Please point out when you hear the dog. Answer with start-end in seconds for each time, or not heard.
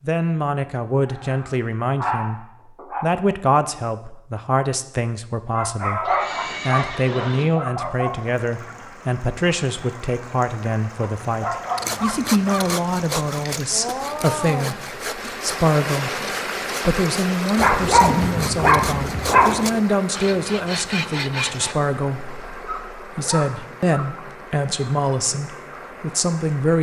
1.1-3.0, 5.5-8.2, 11.0-12.8, 17.6-19.6, 22.5-24.1.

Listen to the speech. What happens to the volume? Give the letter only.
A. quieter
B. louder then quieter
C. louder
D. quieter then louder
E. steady
E.